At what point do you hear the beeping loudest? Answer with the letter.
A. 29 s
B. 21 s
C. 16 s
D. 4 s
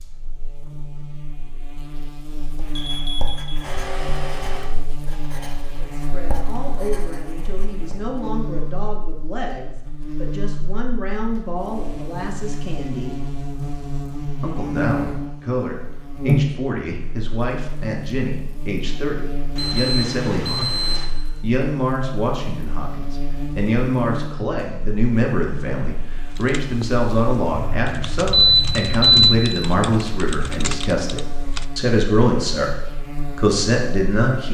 A.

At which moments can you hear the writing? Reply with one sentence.
You can hear the writing from 2.5 to 8.0 s.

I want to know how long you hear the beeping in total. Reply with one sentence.
The beeping can be heard for 5 seconds in total.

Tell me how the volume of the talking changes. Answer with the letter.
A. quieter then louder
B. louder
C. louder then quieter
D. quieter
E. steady
B.